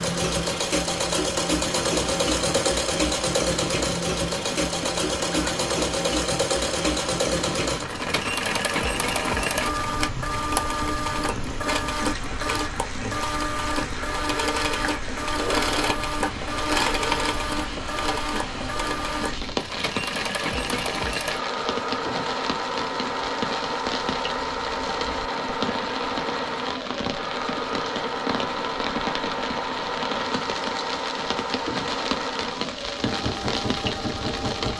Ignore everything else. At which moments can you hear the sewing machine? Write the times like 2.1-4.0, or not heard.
0.0-34.7.